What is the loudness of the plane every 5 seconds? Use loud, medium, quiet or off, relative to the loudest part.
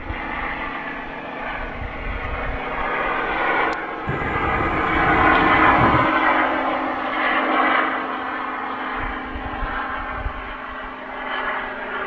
medium, loud, medium.